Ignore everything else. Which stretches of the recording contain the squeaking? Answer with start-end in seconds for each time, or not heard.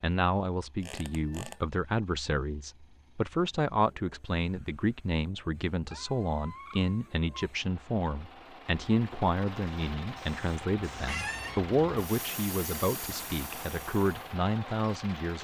0.8-1.6, 5.8-7.3, 11.1-11.6.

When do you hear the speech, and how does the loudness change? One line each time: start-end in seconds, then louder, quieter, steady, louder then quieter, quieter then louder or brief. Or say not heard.
0.0-15.3 steady.